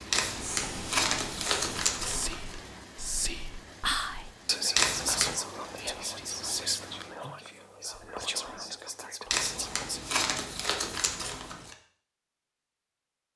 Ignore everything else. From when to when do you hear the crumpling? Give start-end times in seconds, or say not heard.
0.1-2.5, 4.8-5.3, 9.3-11.8.